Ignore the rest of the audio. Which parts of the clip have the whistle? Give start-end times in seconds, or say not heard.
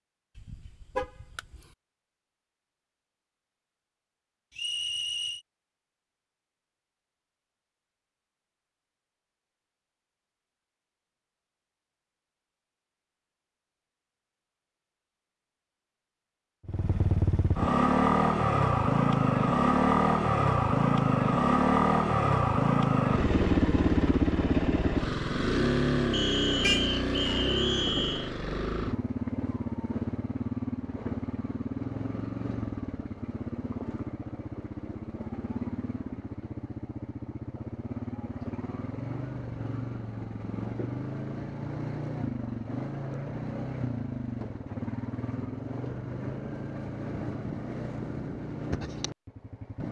4.5-5.4, 26.1-28.3.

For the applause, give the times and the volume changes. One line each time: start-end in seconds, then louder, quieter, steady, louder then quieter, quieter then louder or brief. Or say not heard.
not heard.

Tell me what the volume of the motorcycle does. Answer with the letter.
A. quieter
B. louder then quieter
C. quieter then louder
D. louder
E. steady
A.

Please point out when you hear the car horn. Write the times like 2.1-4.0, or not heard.
0.3-1.6, 26.6-27.4.